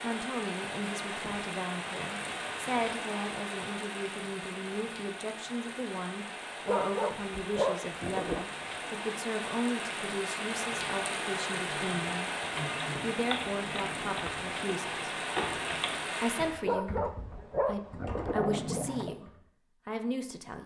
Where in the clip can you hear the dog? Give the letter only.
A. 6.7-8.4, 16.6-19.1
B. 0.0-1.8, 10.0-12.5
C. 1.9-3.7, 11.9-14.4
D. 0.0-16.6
A.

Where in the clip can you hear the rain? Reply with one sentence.
You can hear the rain from 0.0 to 16.6 s.